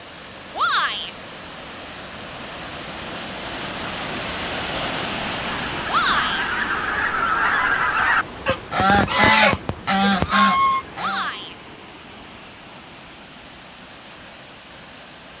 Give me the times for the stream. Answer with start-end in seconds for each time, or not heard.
0.0-15.3.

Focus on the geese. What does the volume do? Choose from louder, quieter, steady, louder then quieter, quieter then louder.
louder.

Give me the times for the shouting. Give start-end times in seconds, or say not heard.
0.6-1.1, 5.8-6.5, 10.9-11.6.